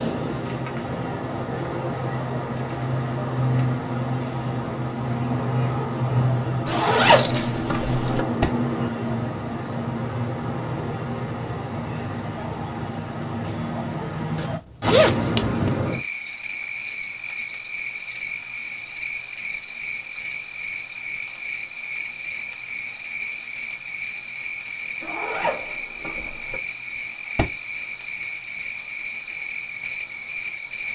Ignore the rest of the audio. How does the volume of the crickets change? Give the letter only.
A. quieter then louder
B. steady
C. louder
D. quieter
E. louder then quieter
B.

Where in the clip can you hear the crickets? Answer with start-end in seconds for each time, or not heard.
0.0-30.9.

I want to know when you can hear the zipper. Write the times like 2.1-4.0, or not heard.
6.7-8.2, 14.3-15.6, 25.0-26.6.